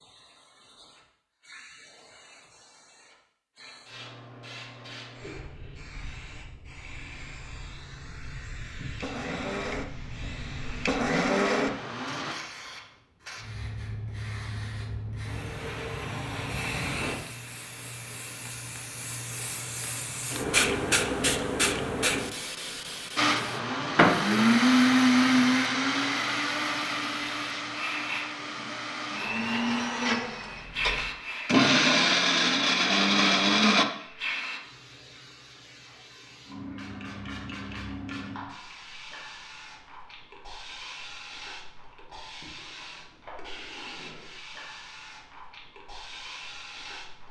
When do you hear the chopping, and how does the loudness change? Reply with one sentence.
You can't hear the chopping here.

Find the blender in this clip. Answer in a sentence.
The blender can be heard from 9.0 to 12.3 s and from 23.1 to 34.1 s.